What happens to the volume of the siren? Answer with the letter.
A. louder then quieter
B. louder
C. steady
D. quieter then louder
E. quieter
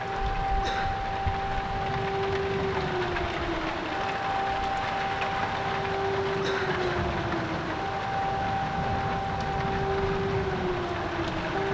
C.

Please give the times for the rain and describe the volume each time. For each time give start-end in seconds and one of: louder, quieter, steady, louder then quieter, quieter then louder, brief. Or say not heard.
0.0-11.6 steady.